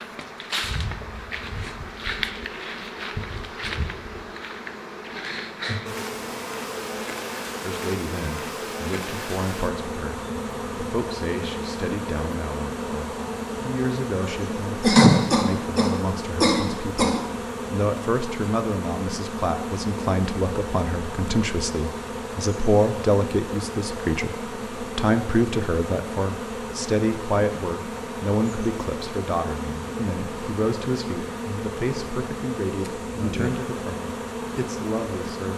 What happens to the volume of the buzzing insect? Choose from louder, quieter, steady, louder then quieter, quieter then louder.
steady.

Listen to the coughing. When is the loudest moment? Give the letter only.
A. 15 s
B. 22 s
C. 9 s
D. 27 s
A.